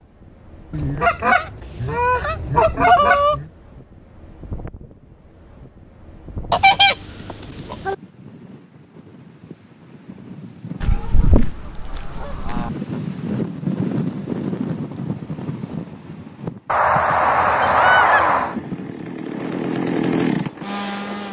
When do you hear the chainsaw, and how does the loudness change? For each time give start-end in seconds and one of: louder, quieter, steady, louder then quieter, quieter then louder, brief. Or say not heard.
17.1-21.2 louder.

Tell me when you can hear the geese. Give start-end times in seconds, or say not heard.
0.7-3.5, 6.5-8.0, 10.8-12.7, 16.6-18.6.